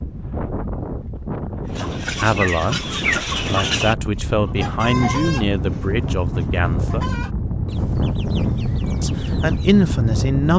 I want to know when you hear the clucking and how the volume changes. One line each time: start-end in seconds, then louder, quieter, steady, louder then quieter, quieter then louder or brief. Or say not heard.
1.7-9.8 quieter.